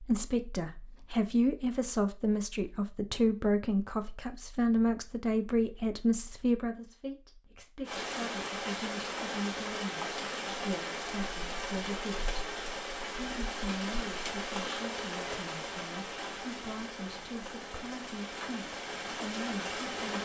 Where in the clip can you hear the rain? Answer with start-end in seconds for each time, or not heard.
7.8-20.2.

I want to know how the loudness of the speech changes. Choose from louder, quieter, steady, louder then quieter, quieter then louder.
quieter.